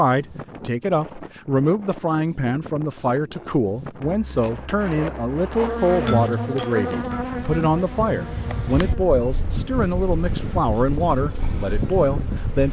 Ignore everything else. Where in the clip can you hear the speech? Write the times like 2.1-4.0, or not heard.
0.0-12.6.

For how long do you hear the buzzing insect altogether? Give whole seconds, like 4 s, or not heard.
7 s.